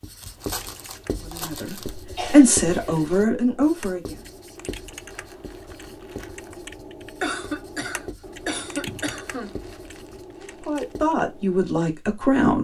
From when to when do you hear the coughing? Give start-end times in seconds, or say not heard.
2.1-3.2, 7.2-9.6.